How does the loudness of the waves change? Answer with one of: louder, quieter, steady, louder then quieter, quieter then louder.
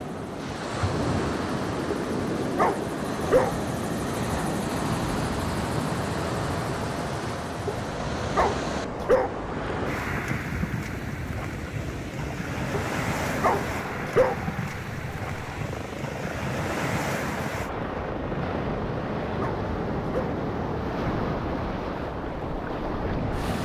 steady.